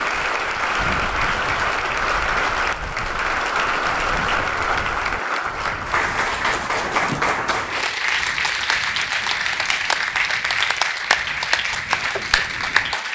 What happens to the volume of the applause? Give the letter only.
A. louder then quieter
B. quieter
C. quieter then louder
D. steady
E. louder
D.